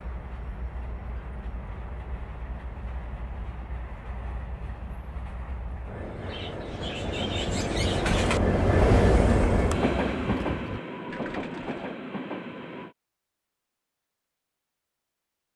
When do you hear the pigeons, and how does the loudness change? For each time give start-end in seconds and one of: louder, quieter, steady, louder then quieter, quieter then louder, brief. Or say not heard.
6.0-11.9 louder then quieter.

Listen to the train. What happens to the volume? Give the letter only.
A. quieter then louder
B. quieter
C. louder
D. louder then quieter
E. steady
D.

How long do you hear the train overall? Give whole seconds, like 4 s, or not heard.
13 s.